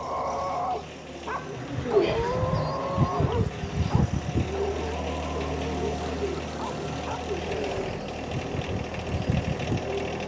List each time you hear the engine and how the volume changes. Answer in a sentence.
The engine can be heard from 0.0 to 10.2 s, getting louder.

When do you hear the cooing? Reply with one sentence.
The cooing can be heard from 1.4 to 10.1 s.